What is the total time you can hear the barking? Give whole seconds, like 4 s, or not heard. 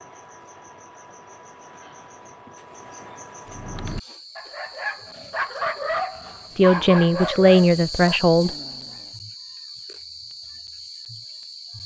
6 s.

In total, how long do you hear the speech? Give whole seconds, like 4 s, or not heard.
2 s.